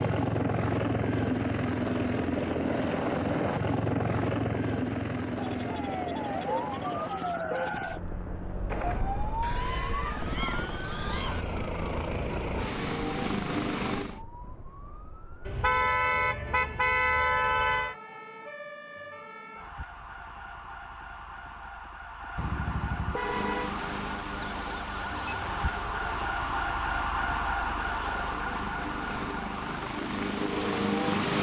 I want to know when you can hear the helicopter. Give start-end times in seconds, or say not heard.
0.0-14.2, 23.1-31.3.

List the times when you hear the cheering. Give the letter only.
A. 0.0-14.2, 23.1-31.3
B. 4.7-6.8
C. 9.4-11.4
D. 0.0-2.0
C.